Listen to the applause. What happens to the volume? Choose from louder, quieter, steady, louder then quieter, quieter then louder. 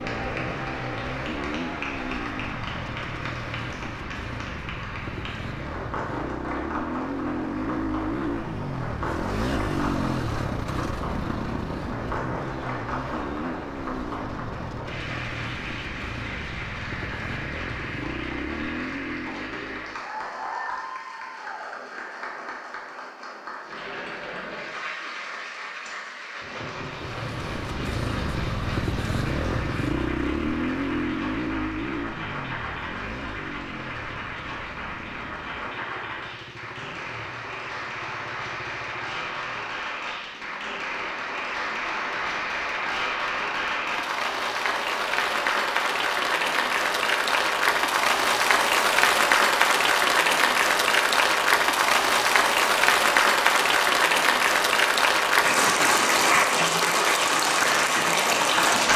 louder.